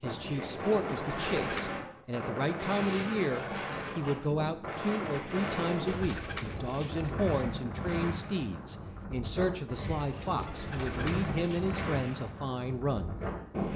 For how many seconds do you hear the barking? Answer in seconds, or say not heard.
not heard.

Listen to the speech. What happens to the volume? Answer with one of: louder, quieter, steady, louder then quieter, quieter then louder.
steady.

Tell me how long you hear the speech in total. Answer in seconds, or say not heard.
13 s.